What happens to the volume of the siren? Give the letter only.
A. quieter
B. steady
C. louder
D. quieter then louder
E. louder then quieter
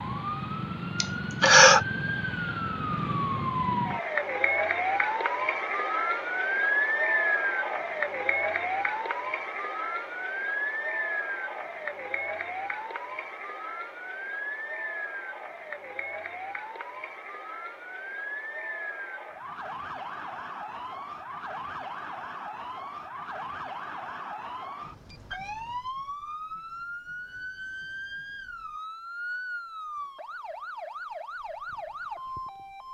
A.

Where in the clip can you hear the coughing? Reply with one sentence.
You can hear the coughing from 1.0 to 1.8 s.